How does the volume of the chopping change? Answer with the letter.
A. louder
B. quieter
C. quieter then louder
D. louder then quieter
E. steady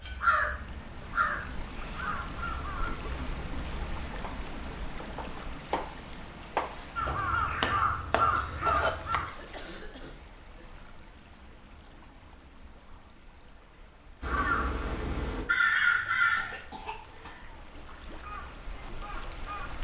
A.